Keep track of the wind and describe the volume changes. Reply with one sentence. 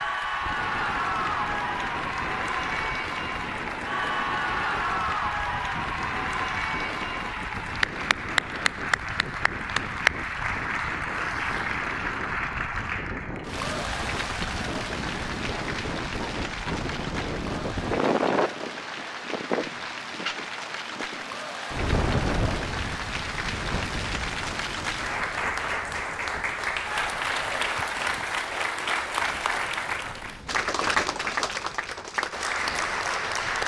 The volume of the wind goes up, then down.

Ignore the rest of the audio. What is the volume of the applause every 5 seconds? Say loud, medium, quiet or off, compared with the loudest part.
loud, loud, loud, medium, medium, loud, loud.